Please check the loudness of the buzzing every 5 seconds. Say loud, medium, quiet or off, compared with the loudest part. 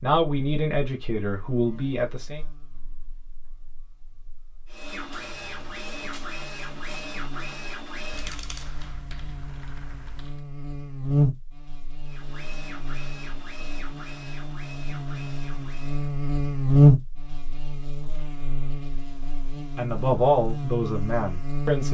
quiet, quiet, medium, loud, medium.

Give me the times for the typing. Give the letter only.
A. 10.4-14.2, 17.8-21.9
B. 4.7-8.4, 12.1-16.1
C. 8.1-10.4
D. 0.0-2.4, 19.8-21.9
C.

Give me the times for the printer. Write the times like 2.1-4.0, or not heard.
4.7-8.4, 12.1-16.1.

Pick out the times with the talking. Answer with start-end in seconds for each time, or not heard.
0.0-2.4, 19.8-21.9.